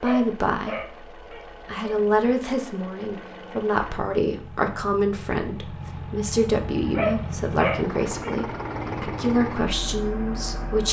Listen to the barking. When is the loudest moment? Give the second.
7 s.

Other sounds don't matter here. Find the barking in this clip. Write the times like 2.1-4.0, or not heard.
0.0-2.0, 6.9-8.3.